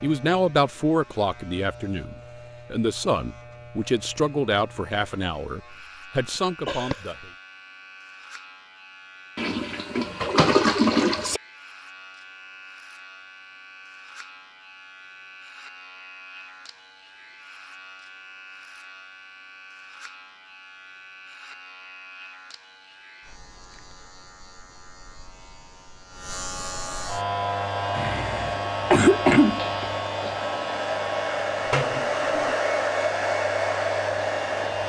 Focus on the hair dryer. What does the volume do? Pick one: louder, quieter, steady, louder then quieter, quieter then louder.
louder.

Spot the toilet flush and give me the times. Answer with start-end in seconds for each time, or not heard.
9.3-11.4, 31.6-32.5.